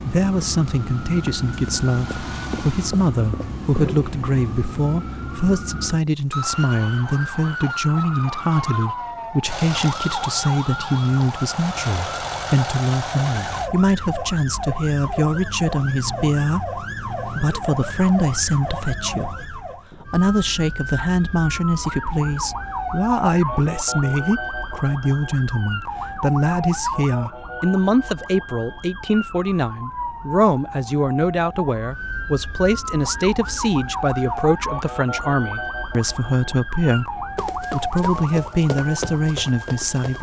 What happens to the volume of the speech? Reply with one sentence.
The volume of the speech stays about the same.